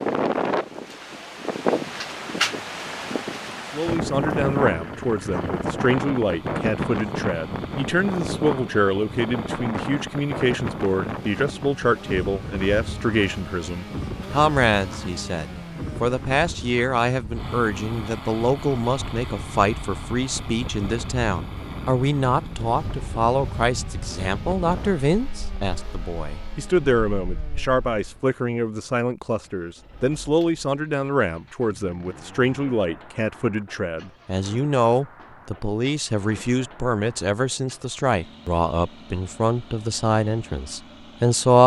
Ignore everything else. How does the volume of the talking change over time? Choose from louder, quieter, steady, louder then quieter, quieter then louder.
steady.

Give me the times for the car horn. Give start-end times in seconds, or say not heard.
not heard.